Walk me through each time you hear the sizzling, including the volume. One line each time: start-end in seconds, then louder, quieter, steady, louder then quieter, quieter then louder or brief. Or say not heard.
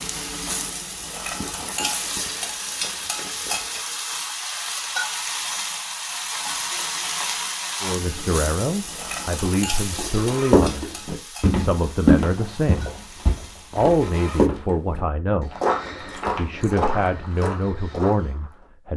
0.0-14.5 quieter.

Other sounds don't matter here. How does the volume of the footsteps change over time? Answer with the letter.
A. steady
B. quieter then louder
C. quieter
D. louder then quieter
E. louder
C.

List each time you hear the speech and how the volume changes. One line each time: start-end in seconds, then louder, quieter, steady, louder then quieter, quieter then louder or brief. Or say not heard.
7.8-12.9 quieter then louder
13.7-15.6 brief
16.4-18.9 brief.